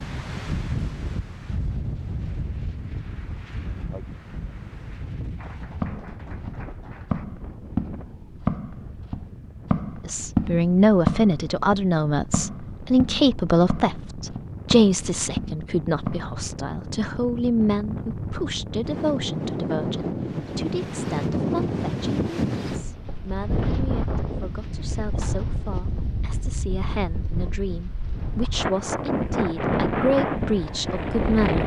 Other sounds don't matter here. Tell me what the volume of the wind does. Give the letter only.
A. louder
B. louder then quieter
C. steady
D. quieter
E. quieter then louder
E.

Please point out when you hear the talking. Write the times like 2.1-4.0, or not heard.
10.1-31.6.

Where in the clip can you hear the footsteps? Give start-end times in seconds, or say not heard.
5.6-16.3.